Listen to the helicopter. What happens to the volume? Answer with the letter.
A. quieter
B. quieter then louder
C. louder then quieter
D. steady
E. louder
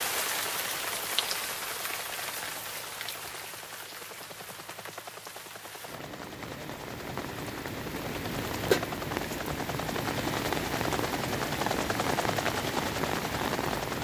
E.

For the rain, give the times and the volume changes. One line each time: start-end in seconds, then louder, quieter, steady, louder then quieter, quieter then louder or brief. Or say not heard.
0.0-14.0 quieter then louder.